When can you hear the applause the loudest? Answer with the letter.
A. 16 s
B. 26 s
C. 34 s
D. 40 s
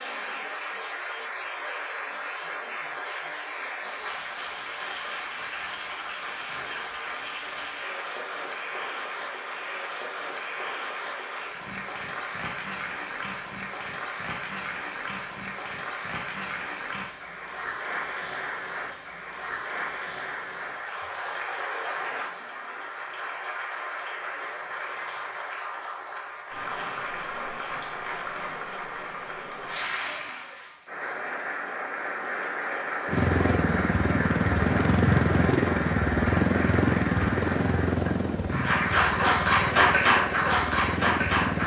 D.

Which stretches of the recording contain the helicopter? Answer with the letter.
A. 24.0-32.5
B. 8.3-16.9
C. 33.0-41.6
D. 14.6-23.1
C.